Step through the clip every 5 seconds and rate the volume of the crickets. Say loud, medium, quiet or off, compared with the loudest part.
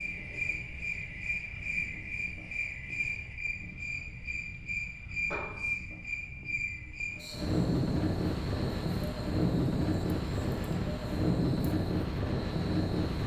loud, loud, quiet.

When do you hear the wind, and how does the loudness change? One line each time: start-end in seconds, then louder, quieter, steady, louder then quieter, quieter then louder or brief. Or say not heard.
0.0-13.2 louder.